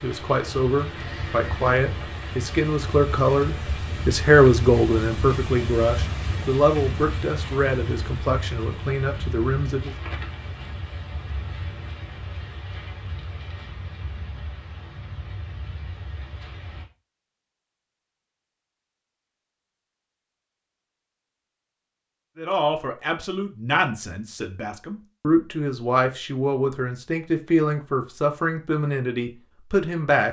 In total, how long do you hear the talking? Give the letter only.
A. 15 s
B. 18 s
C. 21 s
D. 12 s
B.